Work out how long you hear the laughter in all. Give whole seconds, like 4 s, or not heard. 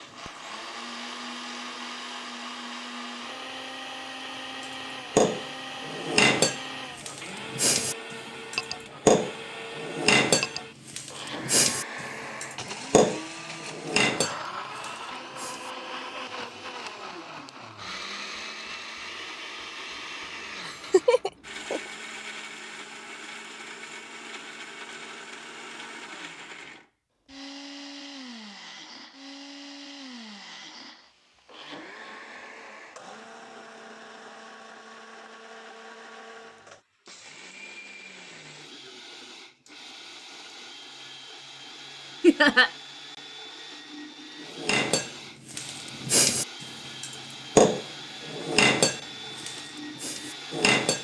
2 s.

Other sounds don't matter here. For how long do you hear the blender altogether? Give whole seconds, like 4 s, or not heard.
51 s.